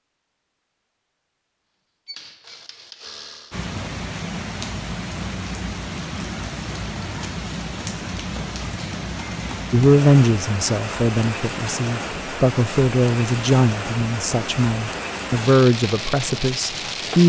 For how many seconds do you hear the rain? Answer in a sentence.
You can hear the rain for 14 seconds altogether.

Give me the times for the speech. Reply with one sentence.
The speech can be heard from 9.7 to 17.2 s.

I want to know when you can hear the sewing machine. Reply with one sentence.
You can hear the sewing machine from 2.0 to 3.6 s.